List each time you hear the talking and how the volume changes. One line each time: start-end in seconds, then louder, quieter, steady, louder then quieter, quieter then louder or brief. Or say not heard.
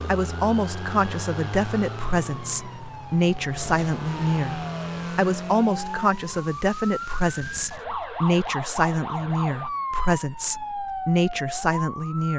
0.1-12.3 steady.